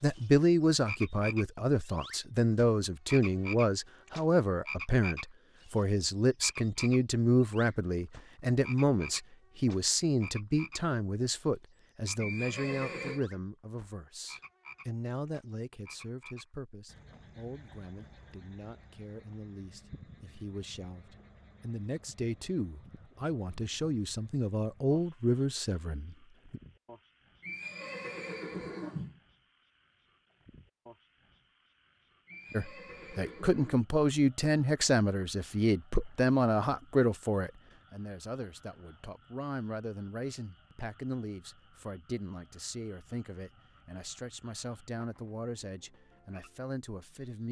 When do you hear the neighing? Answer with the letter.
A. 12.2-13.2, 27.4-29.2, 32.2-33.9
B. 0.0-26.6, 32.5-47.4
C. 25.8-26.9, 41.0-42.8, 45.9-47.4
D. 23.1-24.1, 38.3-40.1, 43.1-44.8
A.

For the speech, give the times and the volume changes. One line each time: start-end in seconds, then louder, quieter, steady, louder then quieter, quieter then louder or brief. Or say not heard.
0.0-26.6 quieter then louder
32.5-47.4 quieter.